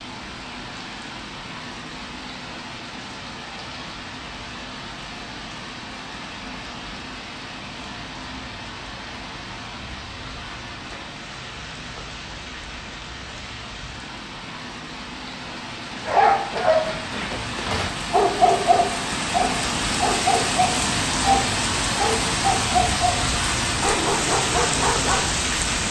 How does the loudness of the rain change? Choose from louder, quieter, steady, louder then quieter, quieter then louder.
louder.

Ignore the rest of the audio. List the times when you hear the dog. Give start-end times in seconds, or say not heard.
16.1-25.3.